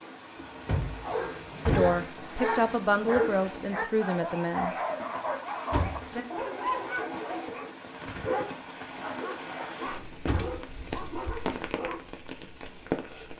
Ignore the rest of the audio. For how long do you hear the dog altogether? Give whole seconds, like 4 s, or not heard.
11 s.